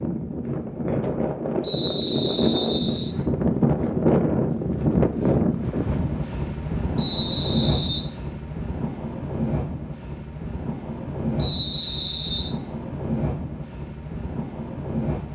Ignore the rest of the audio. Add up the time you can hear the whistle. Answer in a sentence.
The whistle can be heard for 4 seconds in total.